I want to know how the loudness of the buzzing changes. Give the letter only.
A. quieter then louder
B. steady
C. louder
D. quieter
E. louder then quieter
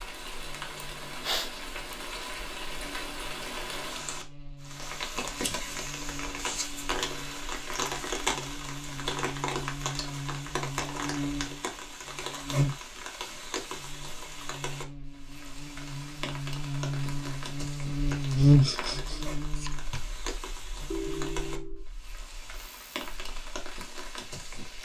E.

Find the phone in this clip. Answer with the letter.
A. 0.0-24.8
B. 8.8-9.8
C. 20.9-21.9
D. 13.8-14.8
C.